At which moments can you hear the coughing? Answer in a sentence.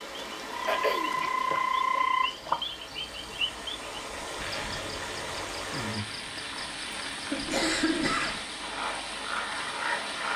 You can hear the coughing from 0.7 to 1.1 s and from 7.3 to 8.4 s.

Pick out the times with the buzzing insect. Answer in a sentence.
The buzzing insect can't be heard in this clip.